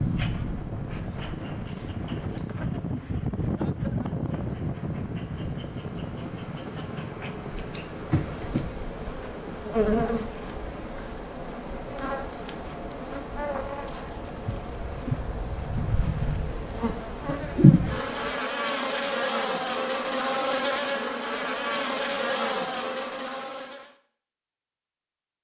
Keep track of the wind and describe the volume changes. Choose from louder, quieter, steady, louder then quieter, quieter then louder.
quieter.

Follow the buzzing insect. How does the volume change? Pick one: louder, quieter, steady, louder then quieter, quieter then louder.
louder.